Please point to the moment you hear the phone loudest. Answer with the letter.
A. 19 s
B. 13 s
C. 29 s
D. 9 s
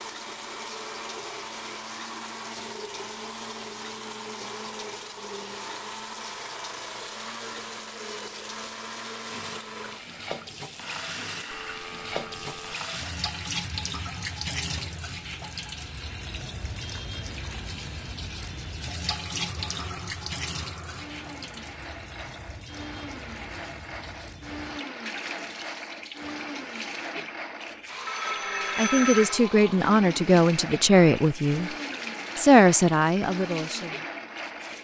C.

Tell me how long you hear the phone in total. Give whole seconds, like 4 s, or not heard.
3 s.